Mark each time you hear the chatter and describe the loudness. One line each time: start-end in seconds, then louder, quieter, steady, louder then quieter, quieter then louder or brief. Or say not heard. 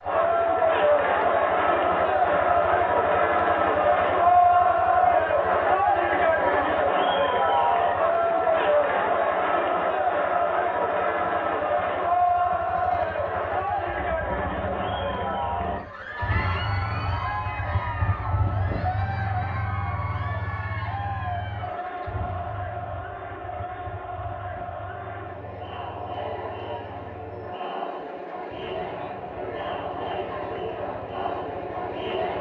0.0-32.3 quieter.